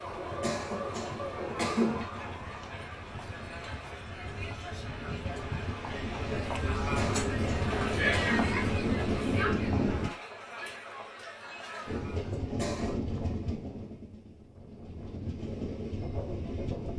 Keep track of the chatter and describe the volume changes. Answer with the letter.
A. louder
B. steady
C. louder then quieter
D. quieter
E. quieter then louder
C.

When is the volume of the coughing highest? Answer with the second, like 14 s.
2 s.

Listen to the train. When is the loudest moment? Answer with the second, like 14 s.
9 s.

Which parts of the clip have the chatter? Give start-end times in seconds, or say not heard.
0.0-12.4.